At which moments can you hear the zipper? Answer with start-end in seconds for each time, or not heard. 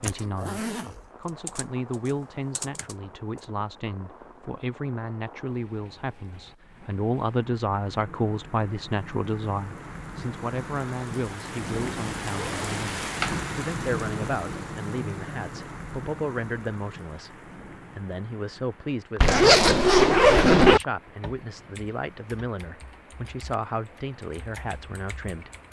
0.1-1.1, 12.3-13.4, 19.2-20.8.